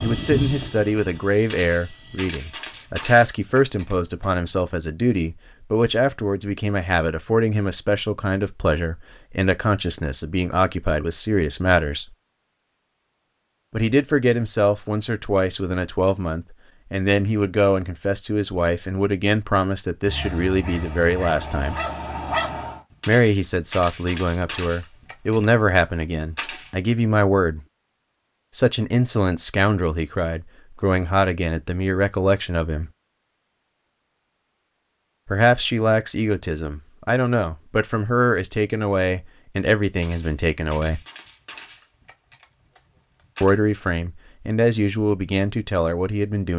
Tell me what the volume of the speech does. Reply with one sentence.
The loudness of the speech stays about the same.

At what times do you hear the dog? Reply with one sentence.
You can hear the dog from 20.1 to 22.8 s.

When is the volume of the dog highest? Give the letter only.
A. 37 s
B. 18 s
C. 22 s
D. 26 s
C.